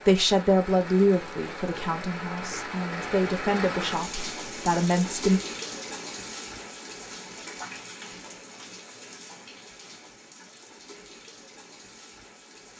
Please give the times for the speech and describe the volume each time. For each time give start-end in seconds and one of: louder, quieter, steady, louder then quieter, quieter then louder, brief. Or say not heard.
0.1-5.4 quieter then louder.